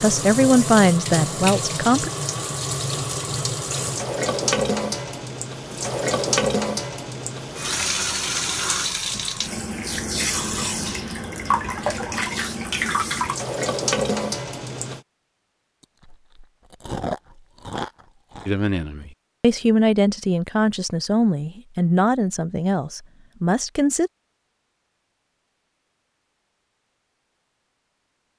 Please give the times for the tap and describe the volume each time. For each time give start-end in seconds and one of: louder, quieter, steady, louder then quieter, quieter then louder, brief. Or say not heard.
0.0-15.0 steady.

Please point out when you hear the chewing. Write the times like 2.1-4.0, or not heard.
15.8-18.5.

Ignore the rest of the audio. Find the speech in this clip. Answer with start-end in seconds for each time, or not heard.
0.0-2.1, 18.4-24.1.